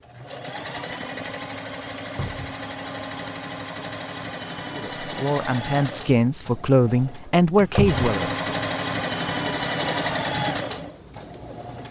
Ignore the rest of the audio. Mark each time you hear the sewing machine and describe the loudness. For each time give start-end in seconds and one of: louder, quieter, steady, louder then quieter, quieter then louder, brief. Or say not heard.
0.0-11.8 louder.